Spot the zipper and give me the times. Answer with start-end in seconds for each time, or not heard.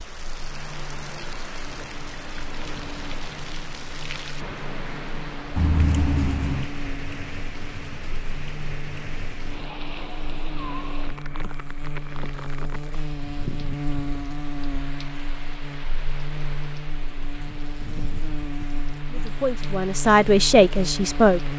not heard.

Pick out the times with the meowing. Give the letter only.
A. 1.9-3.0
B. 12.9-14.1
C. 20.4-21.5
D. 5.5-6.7
D.